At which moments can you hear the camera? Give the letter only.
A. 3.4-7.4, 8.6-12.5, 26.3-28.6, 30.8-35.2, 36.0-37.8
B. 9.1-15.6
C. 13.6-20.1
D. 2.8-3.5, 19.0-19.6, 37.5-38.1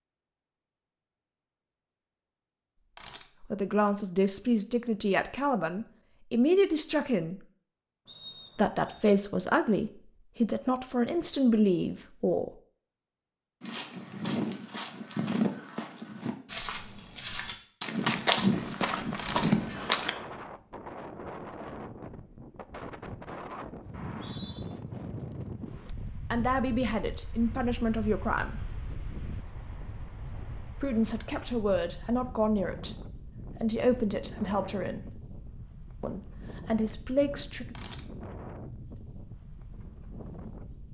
D.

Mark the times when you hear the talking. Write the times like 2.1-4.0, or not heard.
3.4-7.4, 8.6-12.5, 26.3-28.6, 30.8-35.2, 36.0-37.8.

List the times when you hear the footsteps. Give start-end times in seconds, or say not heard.
13.6-20.1.